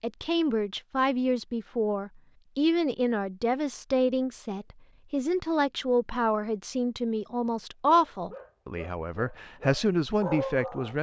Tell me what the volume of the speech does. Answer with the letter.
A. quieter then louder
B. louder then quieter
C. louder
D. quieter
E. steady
E.